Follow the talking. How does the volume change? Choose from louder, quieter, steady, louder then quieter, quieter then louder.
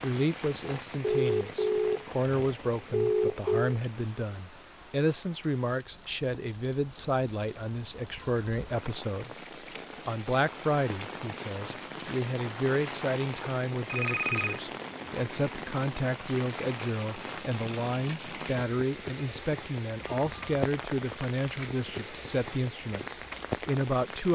steady.